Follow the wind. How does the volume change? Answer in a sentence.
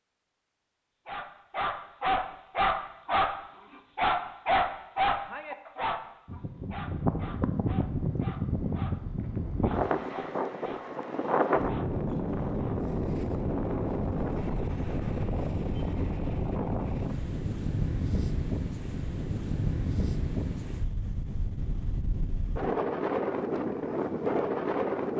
The loudness of the wind stays about the same.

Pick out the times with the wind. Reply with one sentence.
You can hear the wind from 6.2 to 25.1 s.